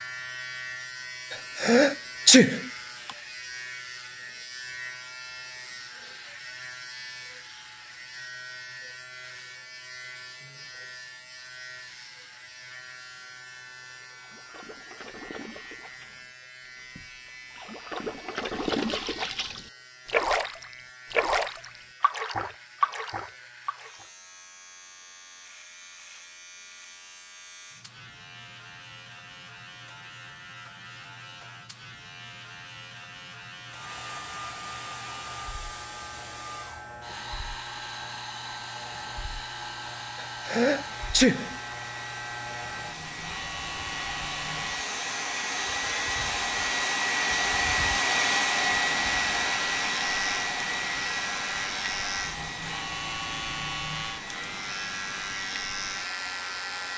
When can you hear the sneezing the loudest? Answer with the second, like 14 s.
2 s.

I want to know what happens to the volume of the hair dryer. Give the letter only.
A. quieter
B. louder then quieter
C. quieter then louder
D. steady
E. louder
B.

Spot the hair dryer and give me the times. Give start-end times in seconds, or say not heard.
33.6-56.9.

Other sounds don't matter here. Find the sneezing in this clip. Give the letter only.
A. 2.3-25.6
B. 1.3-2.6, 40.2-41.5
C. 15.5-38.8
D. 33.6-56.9
B.